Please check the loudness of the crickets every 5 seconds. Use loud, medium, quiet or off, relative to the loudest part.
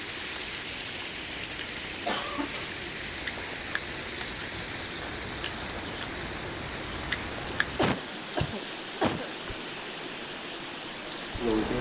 quiet, medium, loud.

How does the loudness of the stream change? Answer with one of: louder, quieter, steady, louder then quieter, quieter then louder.
steady.